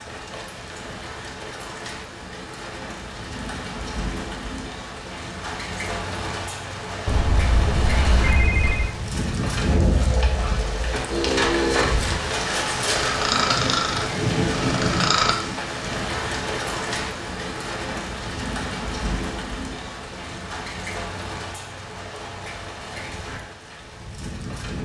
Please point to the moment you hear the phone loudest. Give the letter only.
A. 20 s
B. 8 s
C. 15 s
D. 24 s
B.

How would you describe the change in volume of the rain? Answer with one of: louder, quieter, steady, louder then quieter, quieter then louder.
louder then quieter.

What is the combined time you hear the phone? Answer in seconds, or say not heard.
2 s.